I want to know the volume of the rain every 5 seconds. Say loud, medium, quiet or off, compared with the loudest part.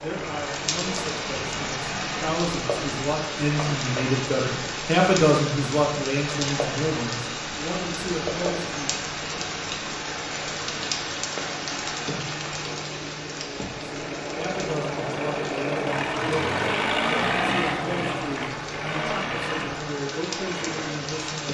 loud, loud, loud, medium, loud.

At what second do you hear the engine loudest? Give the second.
17 s.